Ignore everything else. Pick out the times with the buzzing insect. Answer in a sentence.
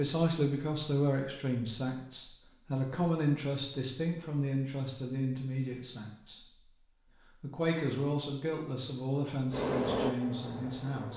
The buzzing insect can be heard from 9.5 to 11.1 s.